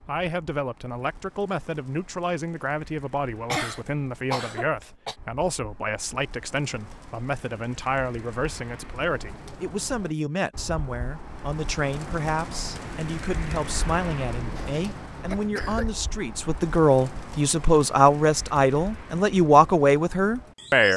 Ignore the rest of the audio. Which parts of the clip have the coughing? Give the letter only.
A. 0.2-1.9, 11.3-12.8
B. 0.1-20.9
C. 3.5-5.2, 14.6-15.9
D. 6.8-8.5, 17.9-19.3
C.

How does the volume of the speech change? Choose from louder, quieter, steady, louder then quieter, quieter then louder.
louder.